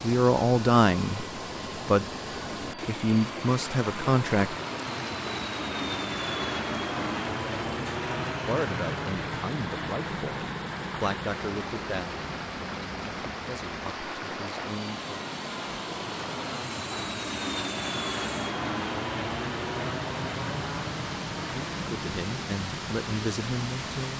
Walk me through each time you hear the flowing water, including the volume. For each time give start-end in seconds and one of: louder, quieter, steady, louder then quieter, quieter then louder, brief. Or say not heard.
0.0-24.1 steady.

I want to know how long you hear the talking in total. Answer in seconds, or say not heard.
13 s.